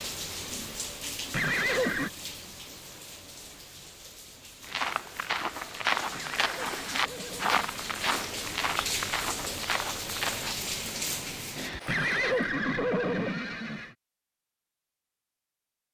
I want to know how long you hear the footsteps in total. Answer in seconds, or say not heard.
6 s.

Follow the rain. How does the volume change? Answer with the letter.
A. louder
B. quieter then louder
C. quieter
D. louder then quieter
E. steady
B.